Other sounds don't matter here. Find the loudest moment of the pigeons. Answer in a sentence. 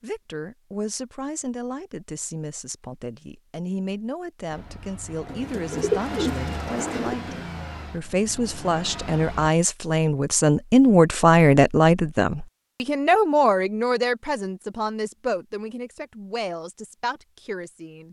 The loudest moment of the pigeons is at 6 seconds.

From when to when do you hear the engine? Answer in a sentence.
The engine can be heard from 4.5 to 9.5 s.